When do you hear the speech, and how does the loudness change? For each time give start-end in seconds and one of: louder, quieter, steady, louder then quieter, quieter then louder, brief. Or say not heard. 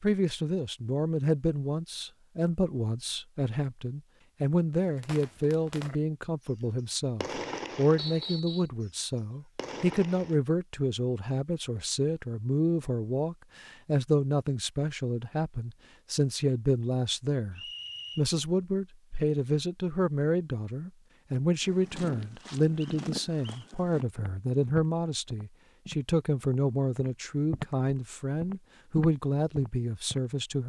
0.0-30.6 steady.